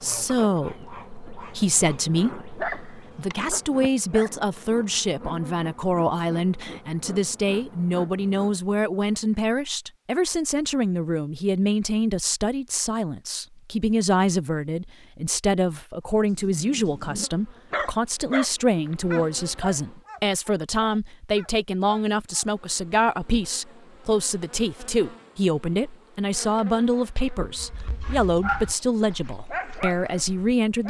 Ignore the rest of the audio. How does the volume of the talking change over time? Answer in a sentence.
The loudness of the talking stays about the same.